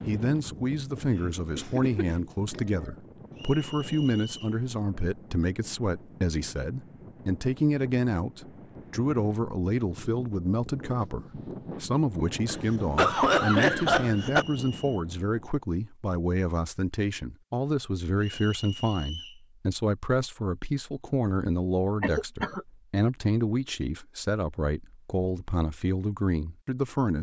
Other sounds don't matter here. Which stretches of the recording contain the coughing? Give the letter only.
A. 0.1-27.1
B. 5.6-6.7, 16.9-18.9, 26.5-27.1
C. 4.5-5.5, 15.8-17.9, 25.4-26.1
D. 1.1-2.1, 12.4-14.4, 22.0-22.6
D.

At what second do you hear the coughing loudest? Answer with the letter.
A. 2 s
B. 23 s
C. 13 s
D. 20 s
C.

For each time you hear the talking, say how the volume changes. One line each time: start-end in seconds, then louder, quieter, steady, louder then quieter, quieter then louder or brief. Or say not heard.
0.1-27.1 steady.